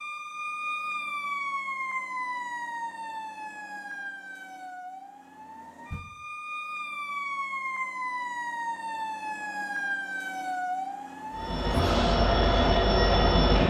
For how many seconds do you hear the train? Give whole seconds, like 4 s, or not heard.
2 s.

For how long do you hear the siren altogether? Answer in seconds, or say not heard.
12 s.